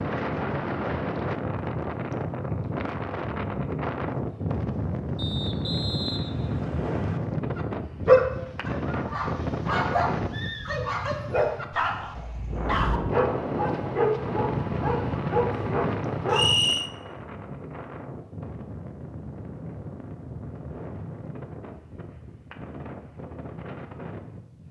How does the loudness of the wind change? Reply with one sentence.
The volume of the wind goes down.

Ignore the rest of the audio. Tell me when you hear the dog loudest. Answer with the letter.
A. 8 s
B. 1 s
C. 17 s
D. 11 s
A.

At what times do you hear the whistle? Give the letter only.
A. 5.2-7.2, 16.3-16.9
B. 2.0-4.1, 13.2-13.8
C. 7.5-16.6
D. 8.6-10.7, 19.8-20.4
A.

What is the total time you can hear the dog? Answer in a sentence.
The dog can be heard for 9 seconds in total.